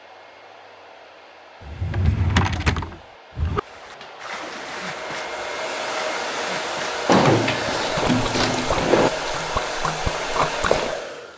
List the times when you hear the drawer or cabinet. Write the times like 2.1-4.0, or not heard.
1.6-3.6, 7.0-9.1.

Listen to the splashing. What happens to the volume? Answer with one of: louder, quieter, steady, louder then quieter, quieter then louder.
louder.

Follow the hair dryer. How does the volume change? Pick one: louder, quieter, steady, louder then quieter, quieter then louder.
louder.